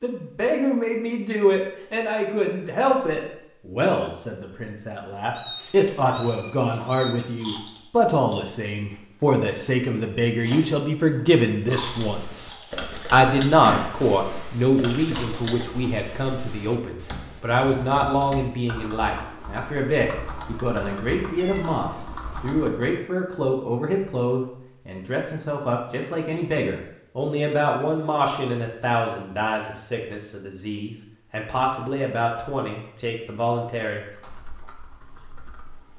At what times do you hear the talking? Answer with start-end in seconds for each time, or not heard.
0.0-12.5, 13.1-34.0.